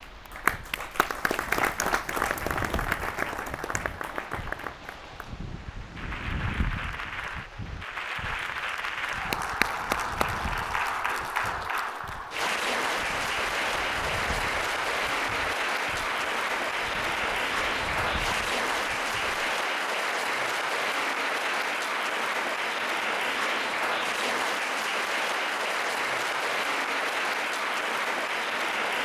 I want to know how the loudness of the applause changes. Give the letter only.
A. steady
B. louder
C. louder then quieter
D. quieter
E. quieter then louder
A.